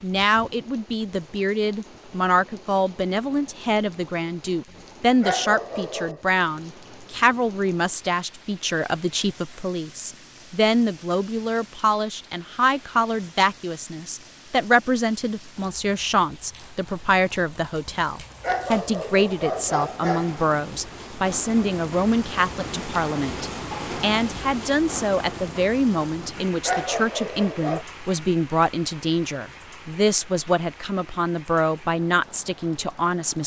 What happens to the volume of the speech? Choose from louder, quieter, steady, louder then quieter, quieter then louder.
steady.